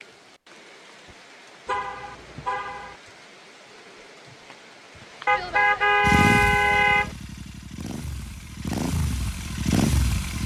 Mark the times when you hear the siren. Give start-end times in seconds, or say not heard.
not heard.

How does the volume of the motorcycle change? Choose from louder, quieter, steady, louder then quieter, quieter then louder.
quieter then louder.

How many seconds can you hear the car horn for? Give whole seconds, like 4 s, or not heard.
3 s.